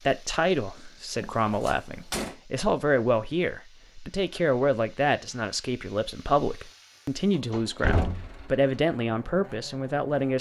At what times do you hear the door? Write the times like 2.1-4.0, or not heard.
1.1-2.4, 7.5-8.4.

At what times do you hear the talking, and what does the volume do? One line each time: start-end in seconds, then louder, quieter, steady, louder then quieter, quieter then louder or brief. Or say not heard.
0.1-10.3 steady.